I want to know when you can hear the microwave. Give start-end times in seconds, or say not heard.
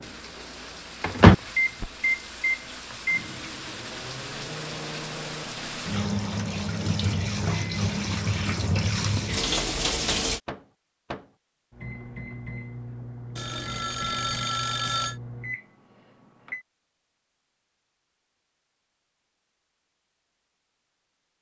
0.0-16.6.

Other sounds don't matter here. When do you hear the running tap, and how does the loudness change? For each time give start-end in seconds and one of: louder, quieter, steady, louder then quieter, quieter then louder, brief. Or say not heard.
0.0-10.4 louder.